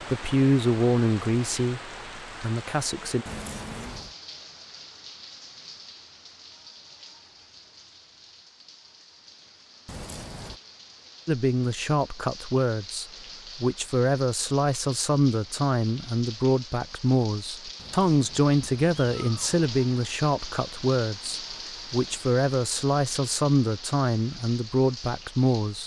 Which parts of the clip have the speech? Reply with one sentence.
You can hear the speech from 0.1 to 3.2 s and from 11.2 to 25.8 s.